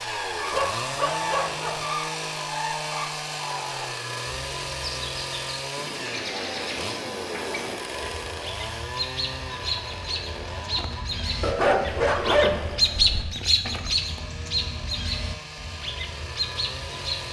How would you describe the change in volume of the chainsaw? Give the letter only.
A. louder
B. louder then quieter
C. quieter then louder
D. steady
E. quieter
E.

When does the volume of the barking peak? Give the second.
12 s.